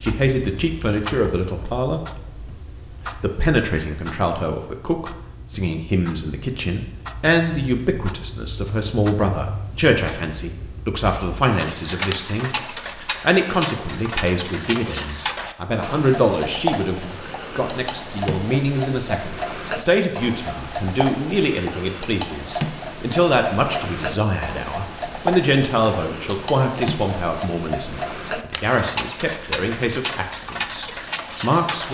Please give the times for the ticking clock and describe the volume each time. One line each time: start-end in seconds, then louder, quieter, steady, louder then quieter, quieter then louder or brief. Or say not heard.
0.0-31.8 louder.